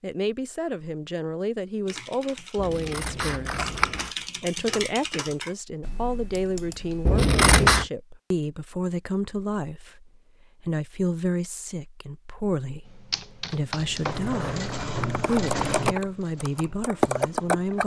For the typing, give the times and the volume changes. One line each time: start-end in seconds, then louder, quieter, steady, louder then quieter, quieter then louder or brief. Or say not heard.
1.9-7.2 louder then quieter
12.8-14.2 brief
15.1-17.8 brief.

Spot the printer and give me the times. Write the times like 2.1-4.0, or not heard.
13.9-17.8.